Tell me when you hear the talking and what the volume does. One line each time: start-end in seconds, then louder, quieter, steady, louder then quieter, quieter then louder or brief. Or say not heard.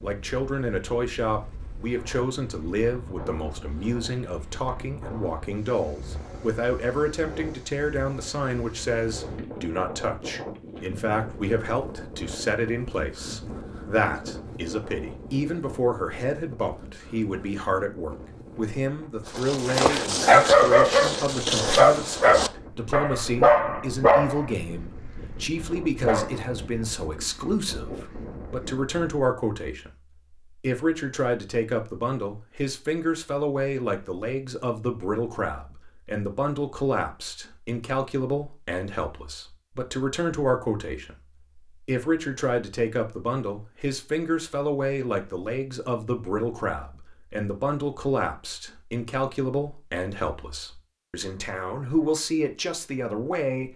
0.0-53.7 steady.